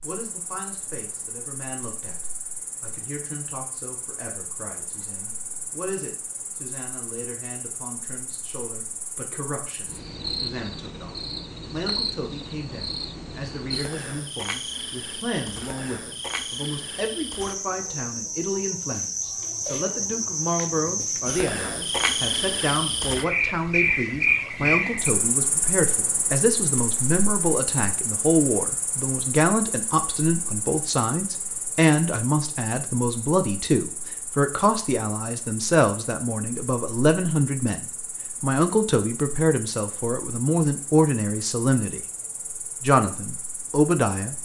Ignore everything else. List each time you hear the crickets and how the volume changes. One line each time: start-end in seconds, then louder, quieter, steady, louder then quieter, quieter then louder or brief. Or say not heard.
0.0-44.4 louder then quieter.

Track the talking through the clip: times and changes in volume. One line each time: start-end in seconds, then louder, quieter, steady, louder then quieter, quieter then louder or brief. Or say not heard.
0.0-42.0 louder
42.8-44.4 brief.